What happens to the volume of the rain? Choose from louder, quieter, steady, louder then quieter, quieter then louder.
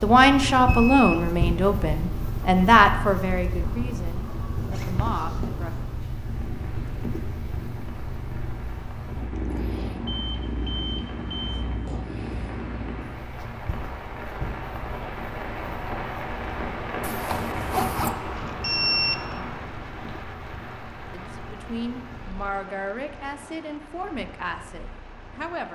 louder then quieter.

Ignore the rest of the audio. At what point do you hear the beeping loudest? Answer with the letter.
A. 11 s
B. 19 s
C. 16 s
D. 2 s
B.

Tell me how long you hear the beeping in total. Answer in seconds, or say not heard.
3 s.